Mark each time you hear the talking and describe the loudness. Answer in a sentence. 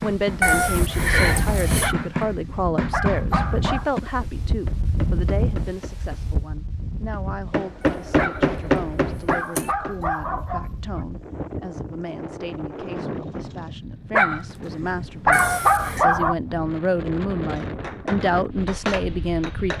You can hear the talking from 0.0 to 19.7 s, getting quieter then louder.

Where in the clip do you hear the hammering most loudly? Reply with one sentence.
The loudest moment of the hammering is at 9 seconds.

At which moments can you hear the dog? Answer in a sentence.
You can hear the dog from 1.8 to 3.9 s, from 8.2 to 11.1 s and from 14.1 to 16.4 s.